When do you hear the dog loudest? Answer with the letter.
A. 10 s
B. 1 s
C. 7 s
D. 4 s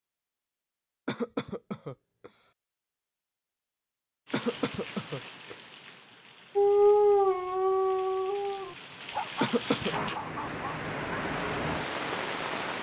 C.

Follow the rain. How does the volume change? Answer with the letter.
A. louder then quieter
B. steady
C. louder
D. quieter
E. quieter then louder
E.